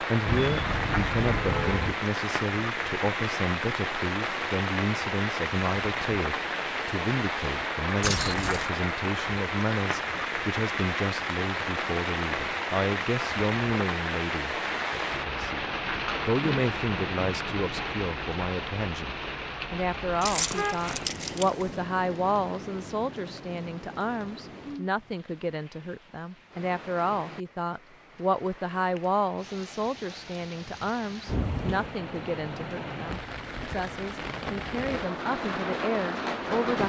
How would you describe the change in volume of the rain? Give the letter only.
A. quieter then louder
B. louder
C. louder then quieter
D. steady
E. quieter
A.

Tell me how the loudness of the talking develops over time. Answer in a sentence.
The volume of the talking stays about the same.